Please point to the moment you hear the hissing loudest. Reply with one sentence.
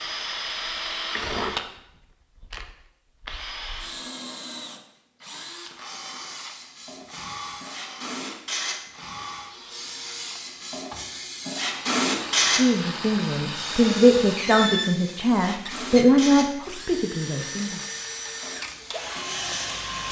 The loudest moment of the hissing is at 12 seconds.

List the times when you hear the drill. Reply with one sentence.
The drill can be heard from 0.0 to 20.0 s.